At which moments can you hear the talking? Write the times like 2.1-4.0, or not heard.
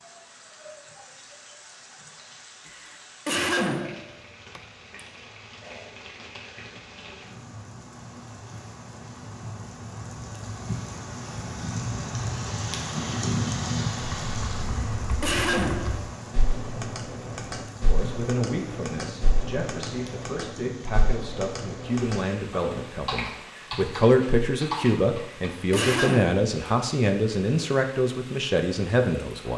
17.9-29.5.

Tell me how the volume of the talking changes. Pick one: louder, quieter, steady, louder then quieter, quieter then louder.
louder.